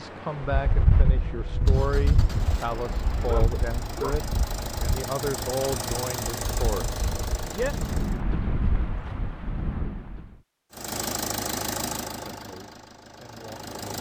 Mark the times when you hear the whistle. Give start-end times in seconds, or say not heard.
not heard.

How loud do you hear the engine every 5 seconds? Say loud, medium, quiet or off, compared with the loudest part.
medium, loud, loud.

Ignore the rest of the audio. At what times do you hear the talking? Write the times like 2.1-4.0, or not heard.
0.0-7.8, 12.2-13.8.